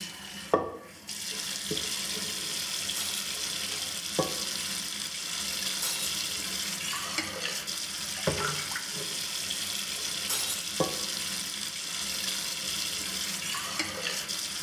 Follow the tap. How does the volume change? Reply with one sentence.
The volume of the tap stays about the same.